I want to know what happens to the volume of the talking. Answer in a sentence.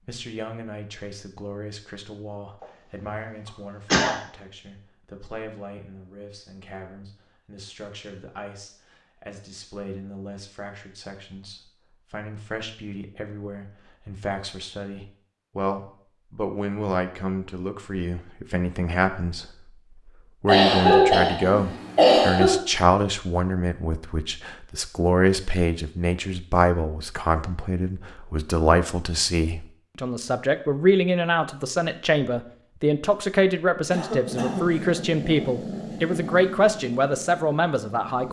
The loudness of the talking goes up.